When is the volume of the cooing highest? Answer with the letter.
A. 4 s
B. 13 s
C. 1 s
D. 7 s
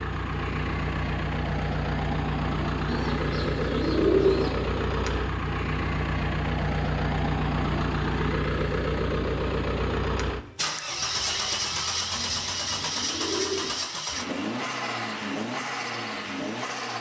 A.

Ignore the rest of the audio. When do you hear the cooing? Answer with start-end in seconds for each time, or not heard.
2.9-4.5, 12.1-13.8.